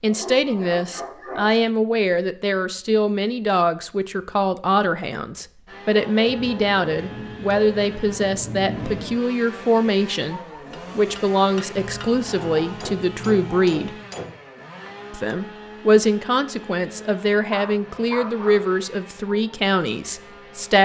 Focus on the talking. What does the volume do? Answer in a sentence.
The loudness of the talking stays about the same.